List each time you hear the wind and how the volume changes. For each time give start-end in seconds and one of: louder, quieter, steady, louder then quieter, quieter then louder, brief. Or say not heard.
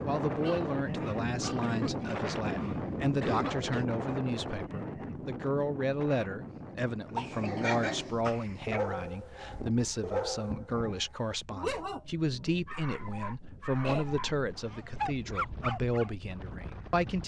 0.0-17.2 quieter.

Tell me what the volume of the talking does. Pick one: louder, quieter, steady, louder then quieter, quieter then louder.
steady.